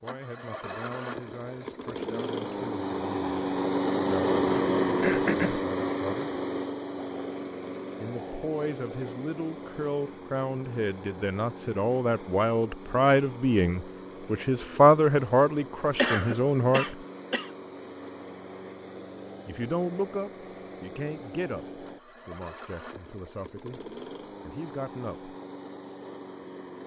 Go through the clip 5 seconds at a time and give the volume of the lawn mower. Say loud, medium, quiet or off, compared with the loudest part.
loud, loud, quiet, quiet, quiet, quiet.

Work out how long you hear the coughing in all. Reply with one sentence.
The coughing can be heard for 3 seconds in total.